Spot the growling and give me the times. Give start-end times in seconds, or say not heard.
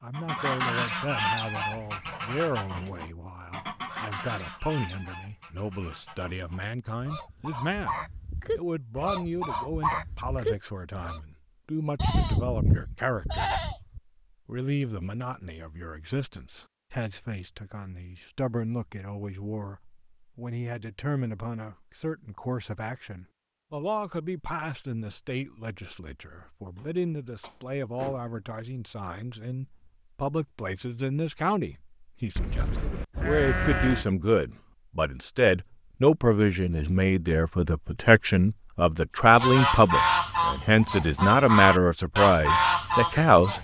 not heard.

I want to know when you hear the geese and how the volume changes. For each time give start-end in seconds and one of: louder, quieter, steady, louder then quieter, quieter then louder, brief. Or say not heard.
0.1-11.2 quieter then louder
39.3-43.6 quieter then louder.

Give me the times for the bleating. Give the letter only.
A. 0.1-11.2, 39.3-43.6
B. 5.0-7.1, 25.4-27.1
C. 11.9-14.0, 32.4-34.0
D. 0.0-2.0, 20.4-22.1
C.